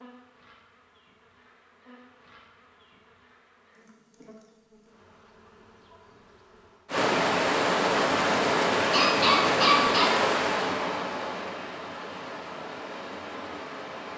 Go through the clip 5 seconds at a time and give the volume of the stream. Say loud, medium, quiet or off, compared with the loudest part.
off, loud, medium.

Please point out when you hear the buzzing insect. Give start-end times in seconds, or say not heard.
0.0-7.0.